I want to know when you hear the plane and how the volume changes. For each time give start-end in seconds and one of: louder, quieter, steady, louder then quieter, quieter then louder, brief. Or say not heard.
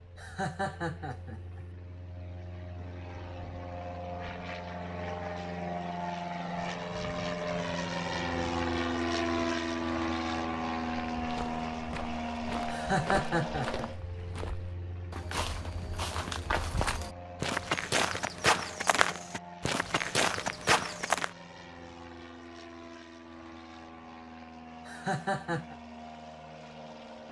0.0-27.2 louder then quieter.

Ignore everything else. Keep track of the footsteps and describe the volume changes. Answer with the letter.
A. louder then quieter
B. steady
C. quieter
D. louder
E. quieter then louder
D.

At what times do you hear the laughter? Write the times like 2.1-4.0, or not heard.
0.1-1.6, 12.7-13.9, 24.9-25.8.